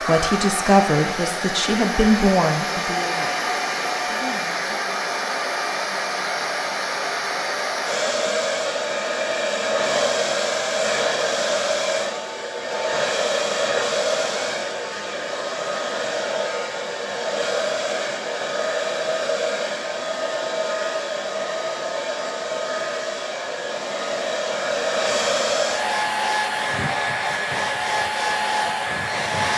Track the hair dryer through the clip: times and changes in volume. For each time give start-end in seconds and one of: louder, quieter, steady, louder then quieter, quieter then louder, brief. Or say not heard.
0.0-29.5 steady.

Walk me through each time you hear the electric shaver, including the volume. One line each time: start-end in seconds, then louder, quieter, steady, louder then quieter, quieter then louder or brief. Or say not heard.
not heard.